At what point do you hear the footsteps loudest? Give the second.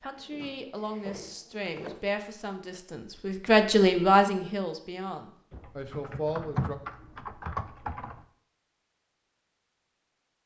2 s.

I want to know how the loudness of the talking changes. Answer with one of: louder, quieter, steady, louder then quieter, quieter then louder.
louder then quieter.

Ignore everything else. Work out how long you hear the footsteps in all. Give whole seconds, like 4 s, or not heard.
2 s.